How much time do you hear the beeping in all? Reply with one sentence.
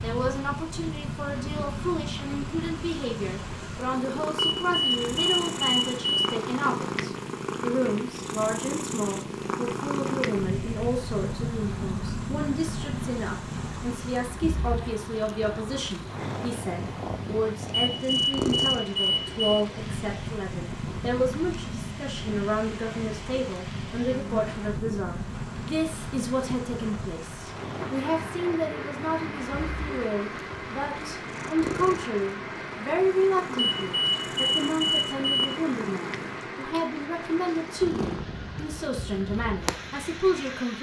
You can hear the beeping for 6 seconds altogether.